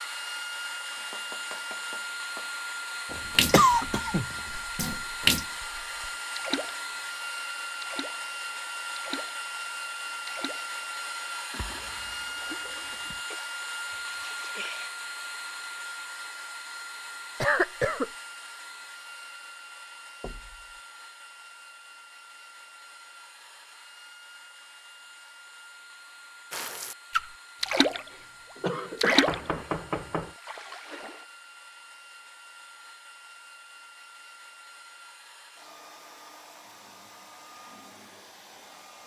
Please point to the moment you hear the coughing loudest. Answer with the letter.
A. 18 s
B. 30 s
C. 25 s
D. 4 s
D.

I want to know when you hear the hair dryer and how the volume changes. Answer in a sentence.
You can hear the hair dryer from 0.0 to 39.0 s, getting quieter.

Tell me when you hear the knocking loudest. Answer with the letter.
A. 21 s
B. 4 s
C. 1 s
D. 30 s
D.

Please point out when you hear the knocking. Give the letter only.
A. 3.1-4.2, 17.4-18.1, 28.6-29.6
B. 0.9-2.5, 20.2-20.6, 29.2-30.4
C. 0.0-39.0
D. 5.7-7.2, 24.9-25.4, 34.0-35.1
B.